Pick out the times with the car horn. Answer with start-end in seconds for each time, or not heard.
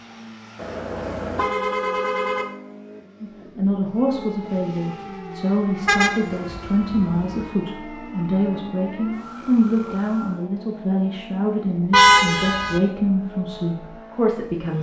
0.6-2.5, 5.8-7.2, 11.9-12.8.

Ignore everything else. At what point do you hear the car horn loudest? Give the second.
12 s.